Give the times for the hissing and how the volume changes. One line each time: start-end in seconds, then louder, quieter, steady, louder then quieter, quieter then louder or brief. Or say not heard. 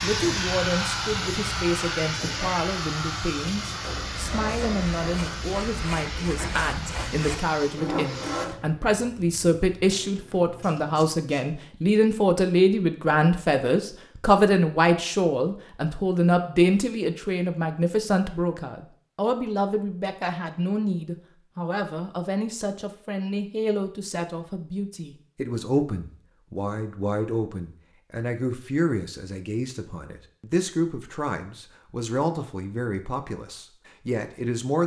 0.0-11.5 quieter.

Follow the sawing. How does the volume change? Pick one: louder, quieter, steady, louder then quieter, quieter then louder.
louder.